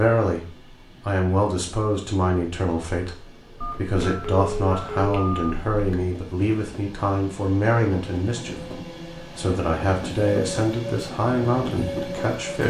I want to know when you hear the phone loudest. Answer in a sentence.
The volume of the phone peaks at 5 seconds.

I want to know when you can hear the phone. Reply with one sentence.
The phone can be heard from 3.6 to 6.0 s.